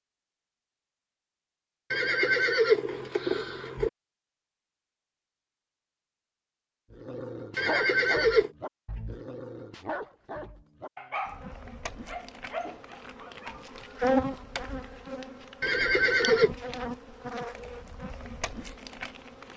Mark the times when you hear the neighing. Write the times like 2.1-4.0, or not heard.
1.9-3.9, 7.5-8.5, 15.6-16.6.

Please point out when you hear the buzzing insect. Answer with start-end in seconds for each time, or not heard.
11.2-19.5.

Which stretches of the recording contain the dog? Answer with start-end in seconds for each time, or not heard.
6.9-13.9.